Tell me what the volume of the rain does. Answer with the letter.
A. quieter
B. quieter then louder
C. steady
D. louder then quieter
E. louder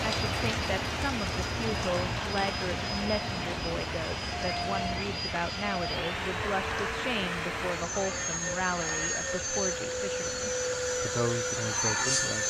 A.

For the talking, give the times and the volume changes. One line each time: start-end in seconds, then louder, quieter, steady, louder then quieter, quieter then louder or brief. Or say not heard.
0.0-12.4 steady.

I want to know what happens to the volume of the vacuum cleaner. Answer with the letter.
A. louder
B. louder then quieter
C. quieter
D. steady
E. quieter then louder
A.